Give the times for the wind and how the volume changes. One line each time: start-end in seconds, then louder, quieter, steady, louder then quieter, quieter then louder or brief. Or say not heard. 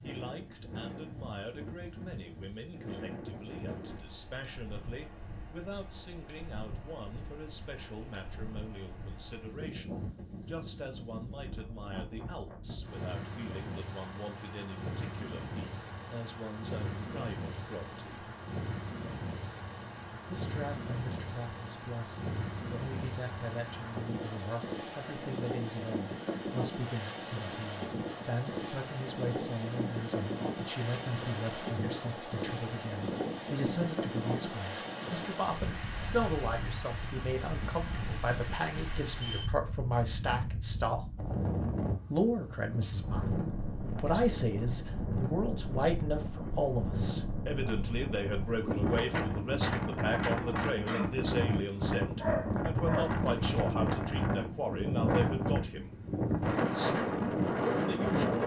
0.0-58.4 louder.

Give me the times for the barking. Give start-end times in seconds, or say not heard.
52.1-53.8.